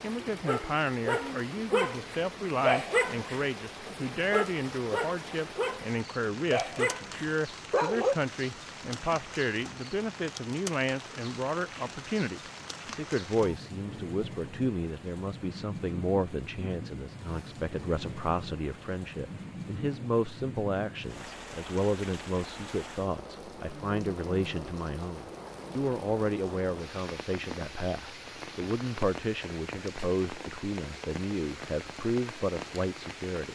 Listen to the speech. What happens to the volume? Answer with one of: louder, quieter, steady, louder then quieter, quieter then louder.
steady.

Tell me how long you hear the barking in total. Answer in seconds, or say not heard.
8 s.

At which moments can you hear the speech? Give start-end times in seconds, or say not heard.
0.0-33.5.